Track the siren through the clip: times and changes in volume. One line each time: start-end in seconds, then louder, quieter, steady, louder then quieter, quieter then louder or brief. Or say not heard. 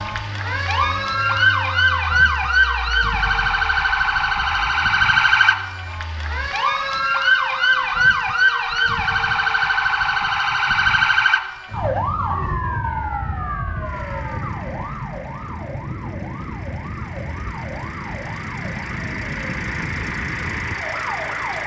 0.0-21.6 quieter.